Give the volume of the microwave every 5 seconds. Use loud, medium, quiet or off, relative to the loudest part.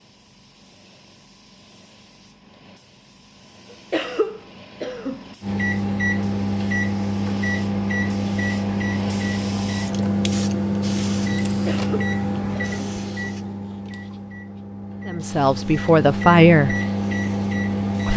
off, loud, loud, loud.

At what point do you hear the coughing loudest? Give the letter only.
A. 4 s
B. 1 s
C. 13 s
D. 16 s
A.